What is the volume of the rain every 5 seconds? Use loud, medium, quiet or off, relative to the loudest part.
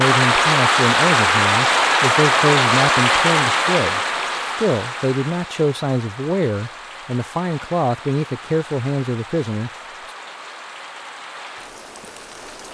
loud, quiet, quiet.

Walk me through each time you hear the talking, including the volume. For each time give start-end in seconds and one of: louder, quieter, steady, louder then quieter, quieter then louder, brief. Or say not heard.
0.0-9.7 steady.